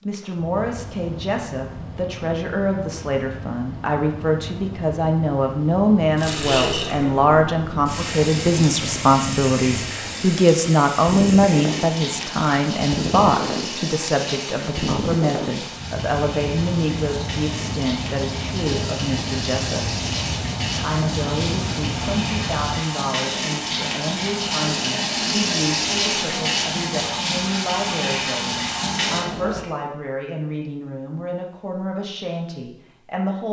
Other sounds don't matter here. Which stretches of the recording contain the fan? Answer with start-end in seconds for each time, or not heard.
0.0-22.9.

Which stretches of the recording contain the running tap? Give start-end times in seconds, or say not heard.
6.2-29.6.